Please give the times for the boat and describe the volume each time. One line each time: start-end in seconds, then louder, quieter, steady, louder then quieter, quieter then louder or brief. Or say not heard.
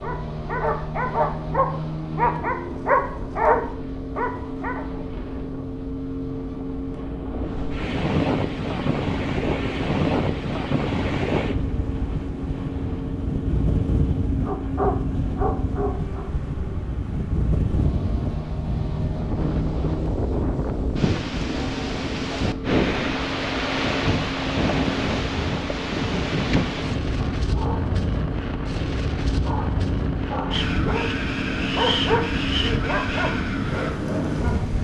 0.0-34.7 steady.